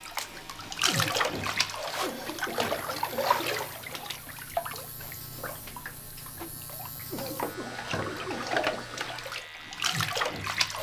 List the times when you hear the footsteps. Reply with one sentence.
The footsteps can't be heard in this clip.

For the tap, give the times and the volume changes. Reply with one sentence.
The tap can be heard from 0.0 to 10.7 s, getting quieter then louder.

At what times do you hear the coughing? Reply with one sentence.
The coughing can be heard from 0.8 to 3.6 s and from 7.1 to 8.9 s.